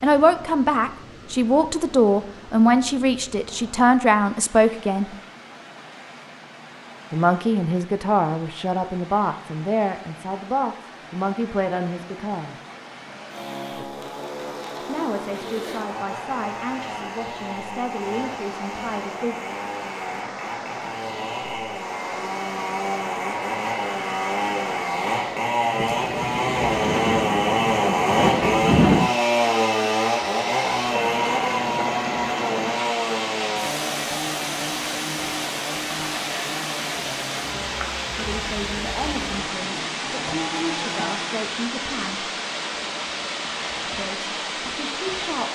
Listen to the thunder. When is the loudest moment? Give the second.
29 s.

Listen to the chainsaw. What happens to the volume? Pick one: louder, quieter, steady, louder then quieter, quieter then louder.
louder then quieter.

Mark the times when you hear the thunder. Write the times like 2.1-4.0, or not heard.
25.8-29.1.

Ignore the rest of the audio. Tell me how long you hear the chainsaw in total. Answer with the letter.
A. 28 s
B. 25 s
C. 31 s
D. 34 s
A.